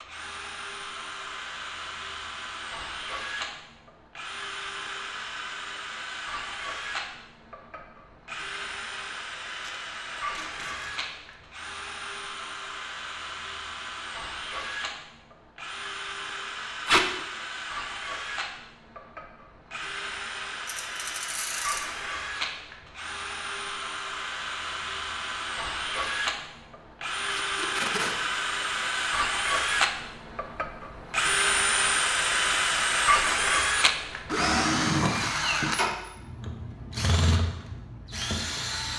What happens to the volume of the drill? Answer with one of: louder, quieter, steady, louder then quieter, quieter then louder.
louder.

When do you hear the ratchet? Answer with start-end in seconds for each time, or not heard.
20.6-21.9.